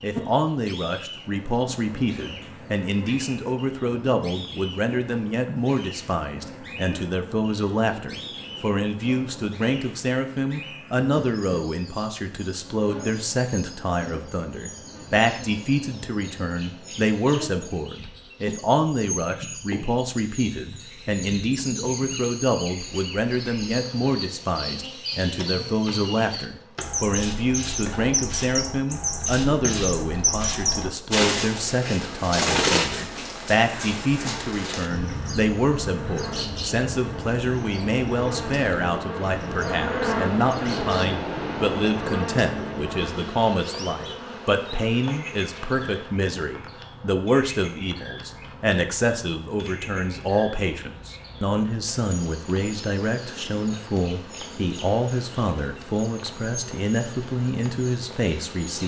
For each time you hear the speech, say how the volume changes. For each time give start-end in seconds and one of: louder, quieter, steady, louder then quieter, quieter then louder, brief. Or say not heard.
0.0-58.8 steady.